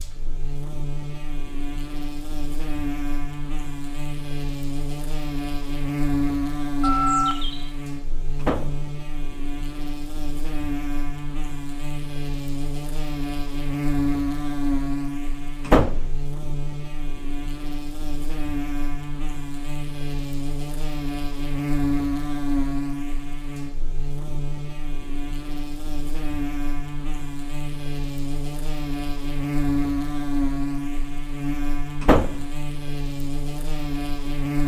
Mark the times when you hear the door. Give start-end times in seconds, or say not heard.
8.4-8.8, 15.7-16.1, 32.0-32.5.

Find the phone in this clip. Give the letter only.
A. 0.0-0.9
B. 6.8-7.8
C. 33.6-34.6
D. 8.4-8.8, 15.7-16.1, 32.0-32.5
B.